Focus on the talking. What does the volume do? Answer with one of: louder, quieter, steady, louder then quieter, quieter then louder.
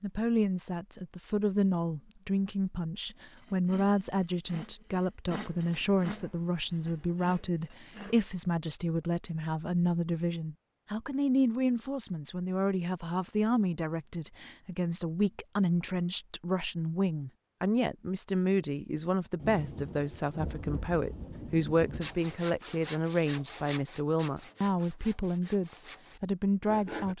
steady.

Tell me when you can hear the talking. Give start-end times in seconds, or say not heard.
0.0-27.1.